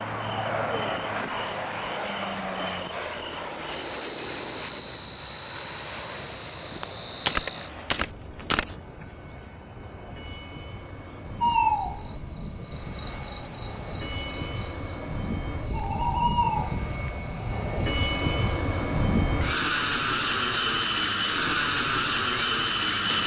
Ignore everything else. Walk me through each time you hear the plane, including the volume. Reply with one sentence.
You can hear the plane from 0.0 to 23.2 s, getting quieter then louder.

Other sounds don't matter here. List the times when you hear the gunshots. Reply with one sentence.
You can hear the gunshots from 6.7 to 8.7 s.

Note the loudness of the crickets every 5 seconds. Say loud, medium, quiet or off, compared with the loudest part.
medium, medium, loud, loud, quiet.